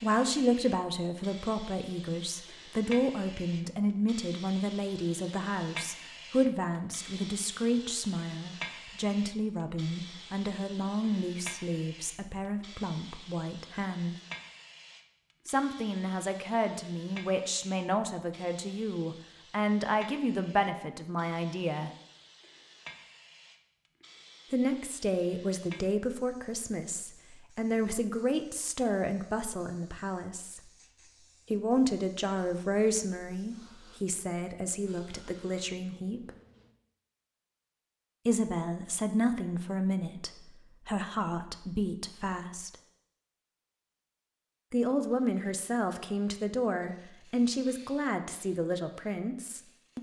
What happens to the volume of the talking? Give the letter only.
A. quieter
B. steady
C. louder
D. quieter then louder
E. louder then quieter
B.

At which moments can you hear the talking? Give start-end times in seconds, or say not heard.
0.0-14.2, 15.4-21.9, 24.5-30.6, 31.5-36.3, 38.2-42.8, 44.7-49.9.